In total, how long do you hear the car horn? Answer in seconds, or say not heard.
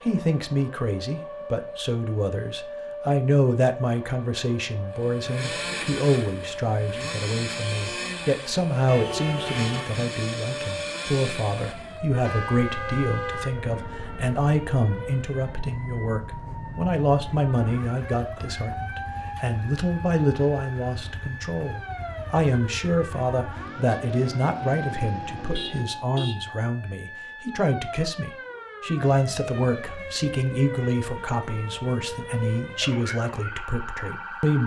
3 s.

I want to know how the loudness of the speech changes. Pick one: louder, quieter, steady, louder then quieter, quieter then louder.
steady.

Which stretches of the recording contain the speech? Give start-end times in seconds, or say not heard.
0.0-34.6.